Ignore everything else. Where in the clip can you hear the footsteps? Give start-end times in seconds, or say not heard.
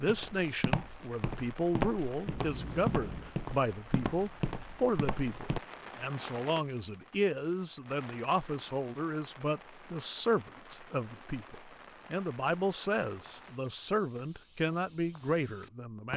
0.0-5.6, 13.2-16.1.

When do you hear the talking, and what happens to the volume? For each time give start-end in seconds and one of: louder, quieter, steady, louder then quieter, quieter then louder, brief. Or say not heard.
0.0-16.1 steady.